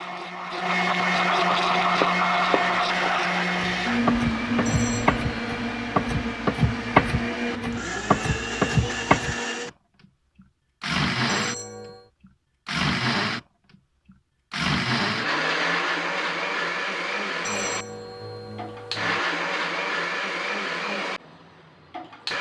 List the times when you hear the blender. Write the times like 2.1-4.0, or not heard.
0.0-9.7, 10.8-11.6, 12.7-13.4, 14.5-22.3.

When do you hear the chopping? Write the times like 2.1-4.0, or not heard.
1.5-9.3.